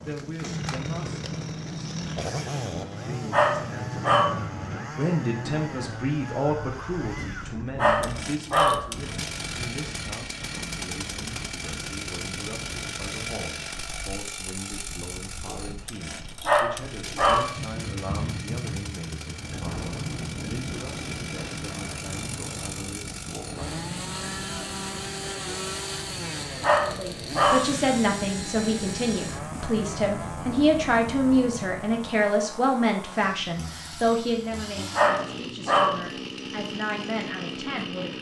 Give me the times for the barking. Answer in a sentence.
The barking can be heard from 3.3 to 4.5 s, from 7.8 to 8.9 s, from 16.4 to 17.6 s, from 26.6 to 27.8 s and from 34.9 to 36.0 s.